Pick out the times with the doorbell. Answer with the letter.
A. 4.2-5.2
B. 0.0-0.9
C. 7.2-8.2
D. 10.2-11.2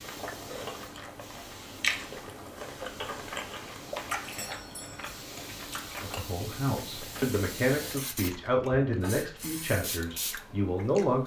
A.